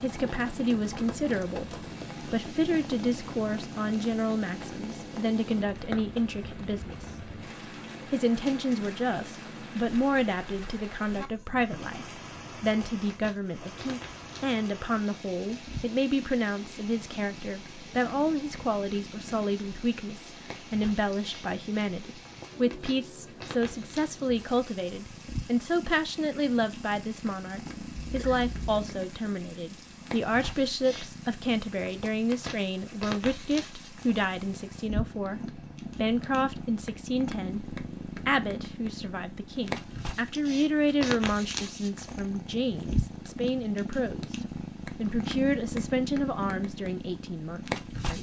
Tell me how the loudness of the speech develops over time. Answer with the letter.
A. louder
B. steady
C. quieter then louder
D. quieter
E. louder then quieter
B.